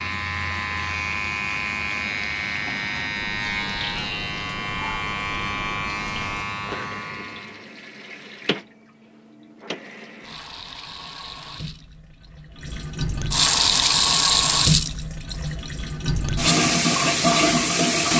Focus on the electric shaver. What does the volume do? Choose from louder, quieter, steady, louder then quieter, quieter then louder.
steady.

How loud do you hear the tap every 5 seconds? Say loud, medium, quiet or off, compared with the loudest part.
quiet, quiet, loud, loud.